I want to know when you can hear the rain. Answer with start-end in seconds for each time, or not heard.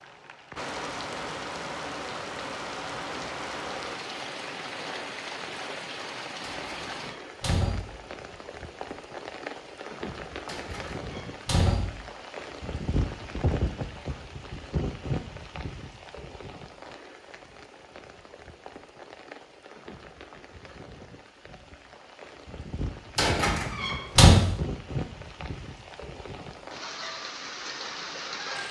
0.0-28.6.